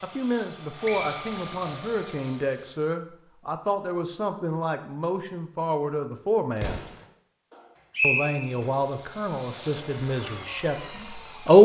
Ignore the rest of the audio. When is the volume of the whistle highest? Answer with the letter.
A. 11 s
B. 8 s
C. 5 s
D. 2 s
B.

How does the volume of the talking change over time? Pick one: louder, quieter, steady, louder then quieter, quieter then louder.
louder.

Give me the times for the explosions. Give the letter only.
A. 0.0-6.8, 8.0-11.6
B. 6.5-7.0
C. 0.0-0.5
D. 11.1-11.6
B.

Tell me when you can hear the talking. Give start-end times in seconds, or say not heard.
0.0-6.8, 8.0-11.6.